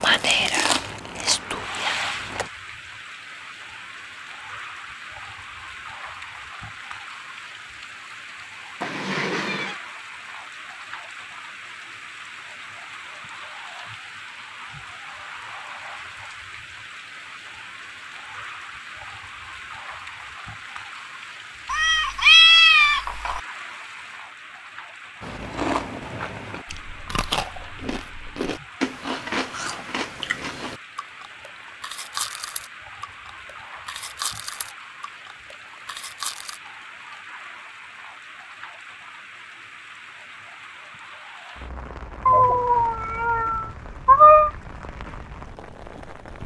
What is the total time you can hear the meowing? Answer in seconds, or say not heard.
5 s.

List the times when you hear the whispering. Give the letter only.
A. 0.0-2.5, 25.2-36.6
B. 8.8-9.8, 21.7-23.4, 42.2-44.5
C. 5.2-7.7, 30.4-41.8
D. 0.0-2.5
D.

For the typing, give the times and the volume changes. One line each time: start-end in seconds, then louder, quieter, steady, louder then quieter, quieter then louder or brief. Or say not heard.
not heard.